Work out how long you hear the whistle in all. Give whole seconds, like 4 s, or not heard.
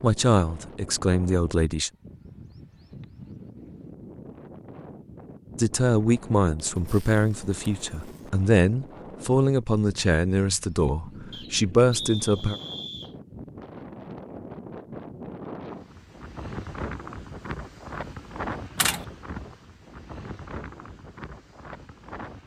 2 s.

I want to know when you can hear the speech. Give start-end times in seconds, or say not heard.
0.0-1.9, 5.5-12.6.